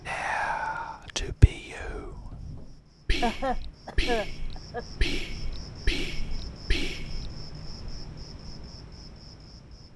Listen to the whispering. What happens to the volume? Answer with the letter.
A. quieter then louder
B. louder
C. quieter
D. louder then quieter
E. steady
A.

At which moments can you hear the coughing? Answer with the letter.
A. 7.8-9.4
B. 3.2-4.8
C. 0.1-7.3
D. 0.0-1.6
B.